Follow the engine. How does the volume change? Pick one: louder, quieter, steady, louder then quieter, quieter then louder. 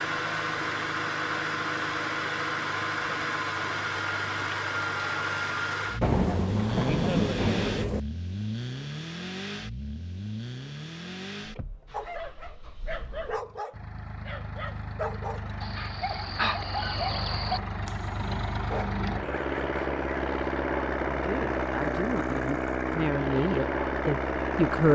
quieter then louder.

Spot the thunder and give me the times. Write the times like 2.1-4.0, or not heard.
6.0-8.0.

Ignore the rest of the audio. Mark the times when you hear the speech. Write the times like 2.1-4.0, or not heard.
21.2-24.9.